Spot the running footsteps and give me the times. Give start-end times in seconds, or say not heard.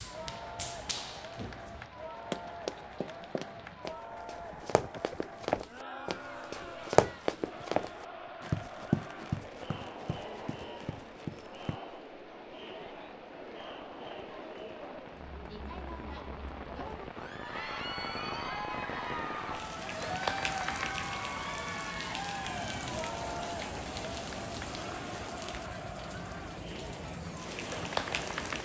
0.0-11.8.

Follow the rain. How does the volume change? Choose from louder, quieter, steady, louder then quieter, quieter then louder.
louder.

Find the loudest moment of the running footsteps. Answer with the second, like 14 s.
7 s.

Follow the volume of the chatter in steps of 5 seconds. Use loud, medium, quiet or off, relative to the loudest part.
medium, medium, medium, loud, loud, medium.